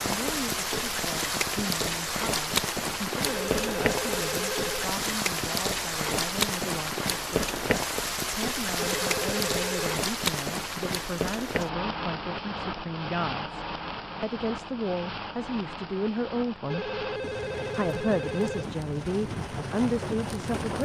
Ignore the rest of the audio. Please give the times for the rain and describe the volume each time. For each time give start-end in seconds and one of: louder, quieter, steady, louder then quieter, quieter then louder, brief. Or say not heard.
0.0-20.7 quieter.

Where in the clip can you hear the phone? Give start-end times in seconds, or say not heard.
3.2-4.8, 8.8-9.9, 16.7-18.7.